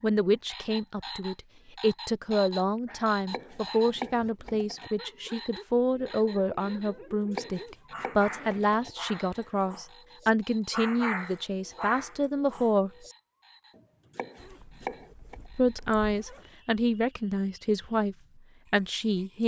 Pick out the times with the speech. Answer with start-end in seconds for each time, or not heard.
0.0-12.9, 15.6-19.4.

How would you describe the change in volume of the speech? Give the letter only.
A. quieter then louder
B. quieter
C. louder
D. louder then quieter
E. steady
E.